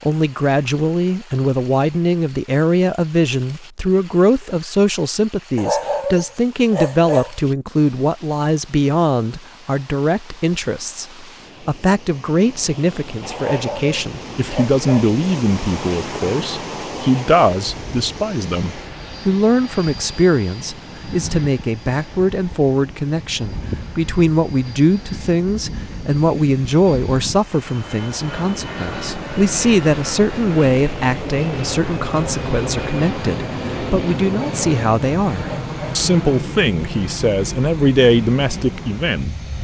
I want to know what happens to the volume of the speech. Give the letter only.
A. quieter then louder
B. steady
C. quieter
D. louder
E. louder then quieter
B.